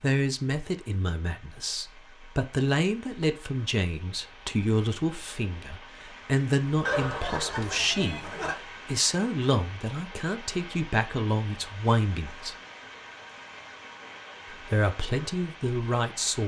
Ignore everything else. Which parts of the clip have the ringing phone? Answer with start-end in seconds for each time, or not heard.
6.8-8.6.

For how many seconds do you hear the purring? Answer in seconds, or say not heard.
not heard.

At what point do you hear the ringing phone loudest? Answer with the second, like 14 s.
7 s.